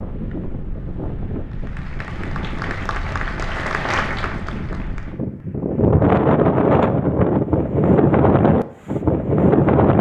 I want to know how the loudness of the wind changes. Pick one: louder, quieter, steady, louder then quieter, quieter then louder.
louder.